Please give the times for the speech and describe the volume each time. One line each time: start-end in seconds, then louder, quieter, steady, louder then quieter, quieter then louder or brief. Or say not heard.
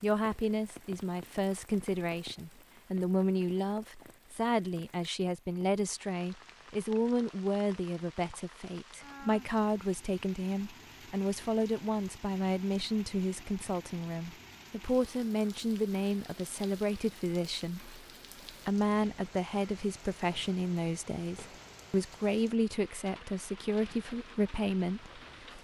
0.0-25.5 steady.